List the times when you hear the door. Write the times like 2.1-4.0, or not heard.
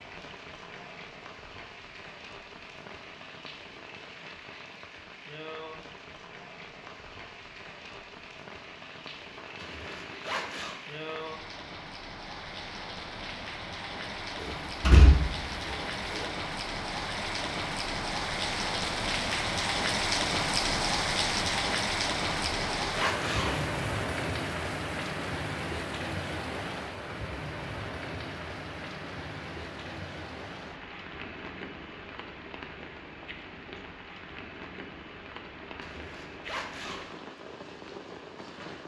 14.4-16.2.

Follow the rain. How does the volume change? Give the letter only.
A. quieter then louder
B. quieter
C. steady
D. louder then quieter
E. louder
D.